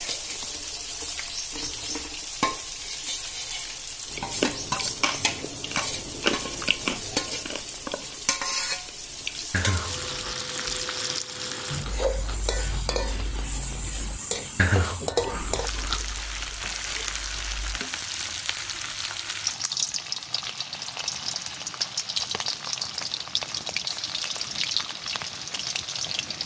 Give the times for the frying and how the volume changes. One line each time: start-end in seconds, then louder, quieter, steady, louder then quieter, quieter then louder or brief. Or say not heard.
0.0-26.4 steady.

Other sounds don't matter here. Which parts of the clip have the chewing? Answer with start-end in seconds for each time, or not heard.
4.1-10.3, 11.8-17.8.